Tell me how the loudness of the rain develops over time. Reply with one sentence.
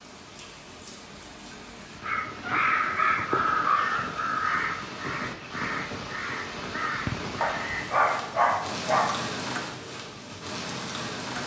The loudness of the rain goes up.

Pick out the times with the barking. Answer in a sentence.
The barking can be heard from 2.4 to 3.9 s and from 7.4 to 9.2 s.